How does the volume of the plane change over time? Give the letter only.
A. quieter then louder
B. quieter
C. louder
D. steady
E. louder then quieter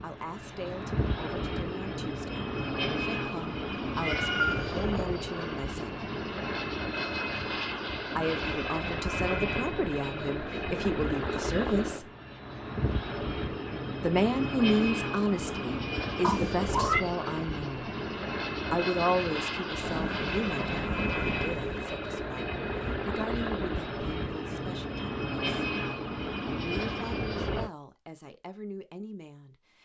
D.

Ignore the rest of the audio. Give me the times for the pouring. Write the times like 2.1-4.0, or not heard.
not heard.